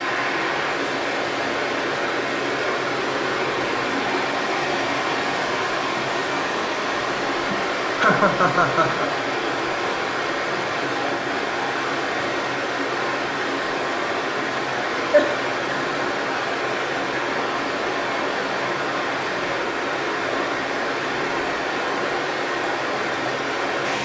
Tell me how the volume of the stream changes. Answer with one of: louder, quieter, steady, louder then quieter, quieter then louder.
steady.